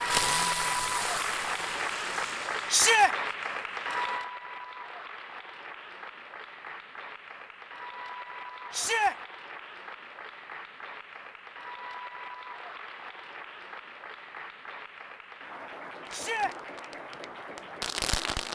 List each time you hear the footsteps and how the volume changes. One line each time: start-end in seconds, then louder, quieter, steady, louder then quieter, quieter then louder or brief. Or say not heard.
not heard.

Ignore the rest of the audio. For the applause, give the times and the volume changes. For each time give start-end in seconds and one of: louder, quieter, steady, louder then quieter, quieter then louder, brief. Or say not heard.
0.0-18.5 quieter.